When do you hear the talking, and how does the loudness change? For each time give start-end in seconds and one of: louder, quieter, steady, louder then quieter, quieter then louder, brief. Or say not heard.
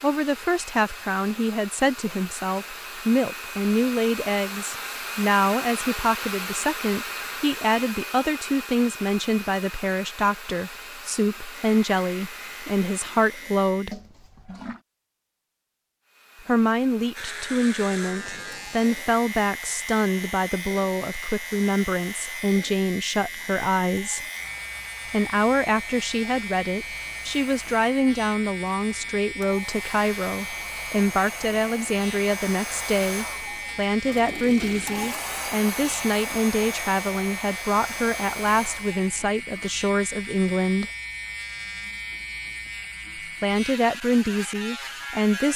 0.0-14.0 steady
16.4-24.2 steady
25.1-40.9 steady
43.4-45.5 brief.